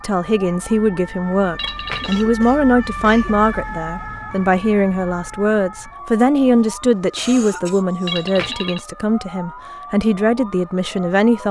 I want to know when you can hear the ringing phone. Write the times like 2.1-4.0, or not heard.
1.6-2.2, 8.1-8.8.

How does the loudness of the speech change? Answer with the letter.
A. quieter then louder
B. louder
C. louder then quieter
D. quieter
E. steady
E.